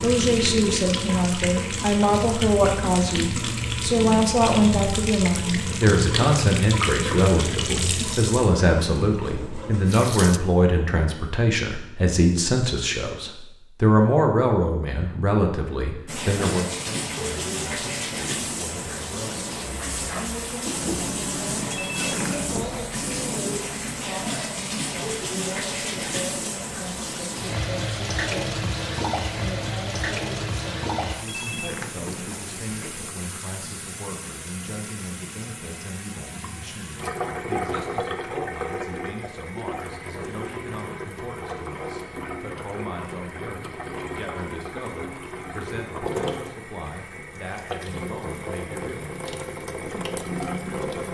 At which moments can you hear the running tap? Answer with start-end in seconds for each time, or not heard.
0.0-10.4, 16.1-51.1.